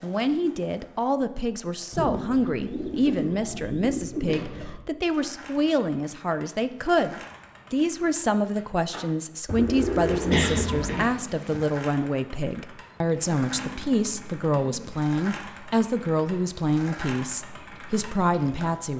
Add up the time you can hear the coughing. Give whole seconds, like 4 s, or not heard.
2 s.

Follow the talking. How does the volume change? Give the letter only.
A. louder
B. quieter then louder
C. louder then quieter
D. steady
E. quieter
D.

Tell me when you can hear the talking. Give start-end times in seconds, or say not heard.
0.0-18.9.